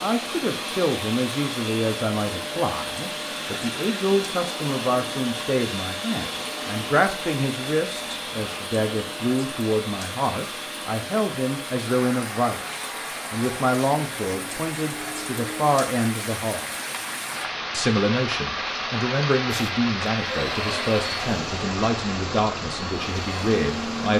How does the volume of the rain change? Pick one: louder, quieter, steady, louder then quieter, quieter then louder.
louder.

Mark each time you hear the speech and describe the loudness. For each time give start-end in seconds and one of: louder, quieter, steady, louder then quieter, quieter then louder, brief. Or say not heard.
0.0-16.7 steady
17.7-24.1 steady.